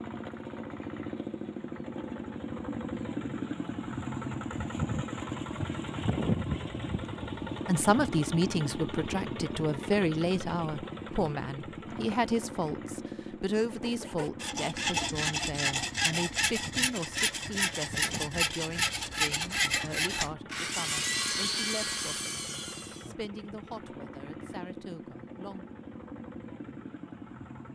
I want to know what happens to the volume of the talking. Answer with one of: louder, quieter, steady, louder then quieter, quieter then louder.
quieter.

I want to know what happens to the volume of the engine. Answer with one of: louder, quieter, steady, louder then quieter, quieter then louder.
quieter.